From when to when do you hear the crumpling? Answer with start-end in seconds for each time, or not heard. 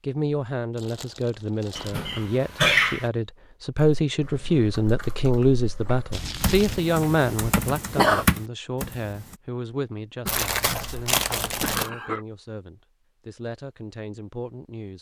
0.8-2.0, 6.1-6.8, 10.2-11.9.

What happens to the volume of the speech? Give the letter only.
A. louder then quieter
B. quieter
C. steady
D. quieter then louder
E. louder
A.